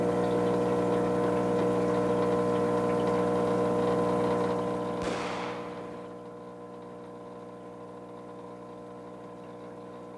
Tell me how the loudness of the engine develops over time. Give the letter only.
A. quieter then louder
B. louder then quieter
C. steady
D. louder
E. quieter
E.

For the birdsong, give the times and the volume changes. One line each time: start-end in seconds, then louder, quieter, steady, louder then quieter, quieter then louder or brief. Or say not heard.
not heard.